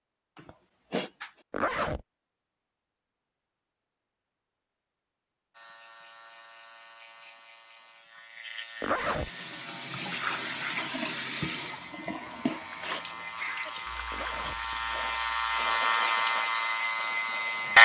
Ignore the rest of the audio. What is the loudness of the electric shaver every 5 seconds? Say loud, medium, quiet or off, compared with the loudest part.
off, quiet, quiet, loud.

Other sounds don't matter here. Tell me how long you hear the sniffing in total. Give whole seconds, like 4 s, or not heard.
2 s.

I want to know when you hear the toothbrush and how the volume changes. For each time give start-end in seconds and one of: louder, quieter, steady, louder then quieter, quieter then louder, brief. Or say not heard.
not heard.